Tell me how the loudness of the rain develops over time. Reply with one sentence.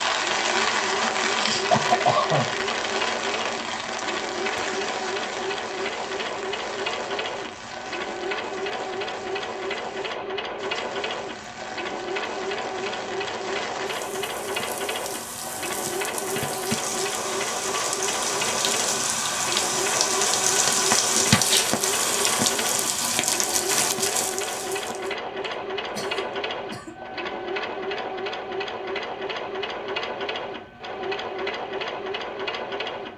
The volume of the rain goes down, then up.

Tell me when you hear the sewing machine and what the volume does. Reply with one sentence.
You can hear the sewing machine from 0.0 to 33.1 s, at a steady volume.